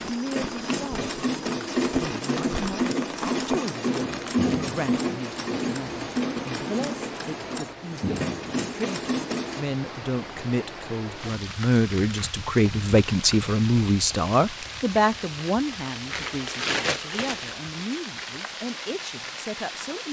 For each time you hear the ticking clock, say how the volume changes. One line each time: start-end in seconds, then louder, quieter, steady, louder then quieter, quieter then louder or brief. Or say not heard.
not heard.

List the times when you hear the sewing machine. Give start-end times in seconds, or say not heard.
0.0-9.7.